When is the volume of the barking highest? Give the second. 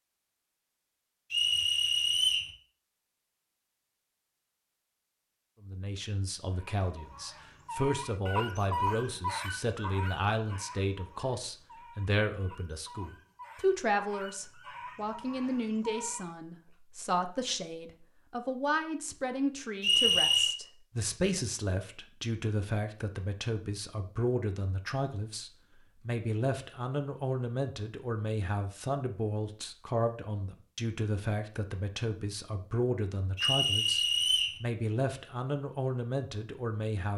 9 s.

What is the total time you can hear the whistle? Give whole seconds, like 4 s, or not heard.
3 s.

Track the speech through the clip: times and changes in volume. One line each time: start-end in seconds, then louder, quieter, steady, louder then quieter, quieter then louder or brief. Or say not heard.
5.6-37.1 steady.